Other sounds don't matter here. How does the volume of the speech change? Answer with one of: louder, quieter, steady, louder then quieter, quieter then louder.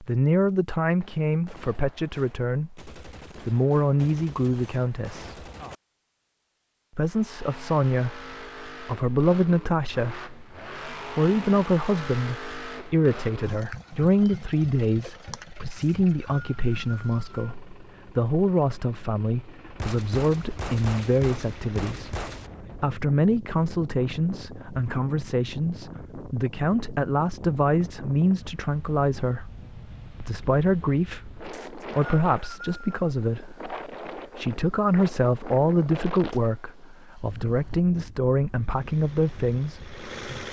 steady.